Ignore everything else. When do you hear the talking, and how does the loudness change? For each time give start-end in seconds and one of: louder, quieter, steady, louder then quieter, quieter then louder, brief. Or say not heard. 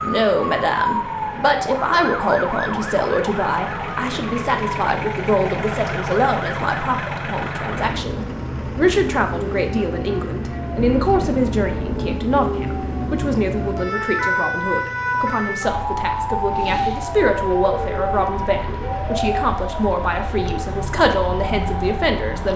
0.0-22.5 steady.